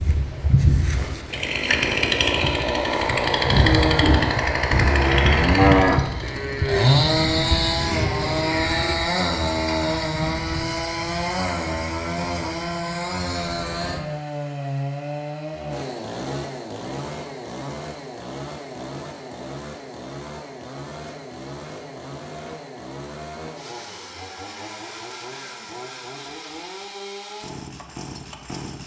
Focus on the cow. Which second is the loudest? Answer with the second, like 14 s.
6 s.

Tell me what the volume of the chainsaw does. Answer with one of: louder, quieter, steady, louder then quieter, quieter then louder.
quieter.